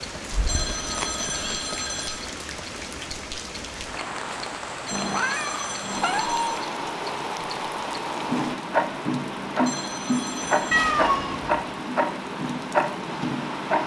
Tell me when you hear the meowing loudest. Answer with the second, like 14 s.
11 s.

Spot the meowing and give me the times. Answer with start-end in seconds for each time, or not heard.
0.3-1.7, 4.9-6.5, 10.7-11.6.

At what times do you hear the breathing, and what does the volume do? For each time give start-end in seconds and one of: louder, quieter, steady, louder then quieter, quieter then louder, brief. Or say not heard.
not heard.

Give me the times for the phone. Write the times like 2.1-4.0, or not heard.
0.5-2.2, 4.8-6.7, 9.7-10.9.